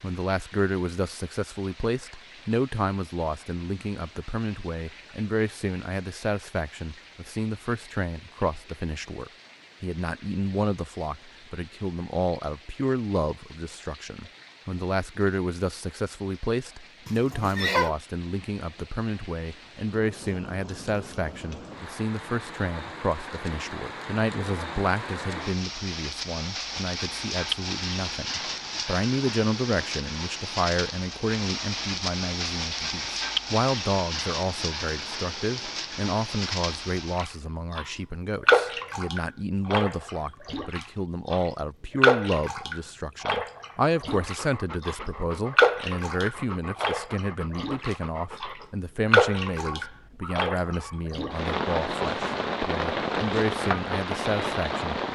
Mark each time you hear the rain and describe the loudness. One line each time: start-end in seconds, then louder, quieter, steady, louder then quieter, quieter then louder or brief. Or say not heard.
0.0-55.1 louder.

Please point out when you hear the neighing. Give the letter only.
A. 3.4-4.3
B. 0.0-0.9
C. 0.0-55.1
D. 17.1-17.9
D.